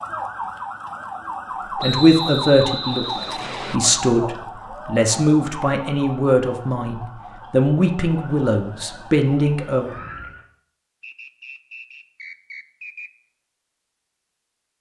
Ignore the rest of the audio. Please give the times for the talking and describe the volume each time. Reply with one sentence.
You can hear the talking from 1.8 to 9.9 s, at a steady volume.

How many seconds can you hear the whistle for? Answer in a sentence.
The whistle can be heard for 4 seconds in total.